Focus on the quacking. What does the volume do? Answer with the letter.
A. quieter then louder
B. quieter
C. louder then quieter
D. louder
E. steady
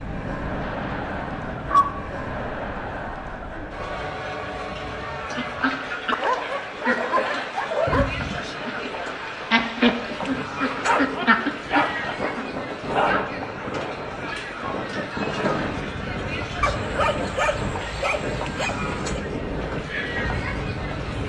A.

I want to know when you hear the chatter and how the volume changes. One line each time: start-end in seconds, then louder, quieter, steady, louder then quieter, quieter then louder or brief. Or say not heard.
0.0-21.2 steady.